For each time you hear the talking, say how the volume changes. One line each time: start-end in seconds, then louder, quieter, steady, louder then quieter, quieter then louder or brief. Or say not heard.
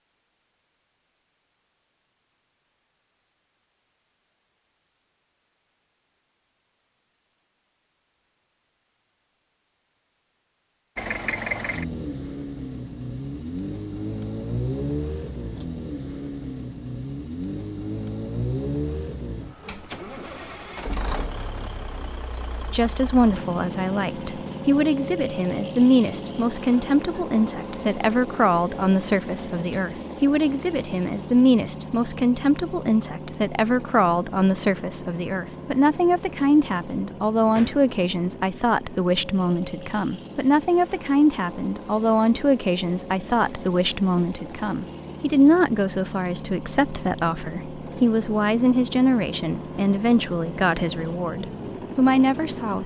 22.7-52.8 steady.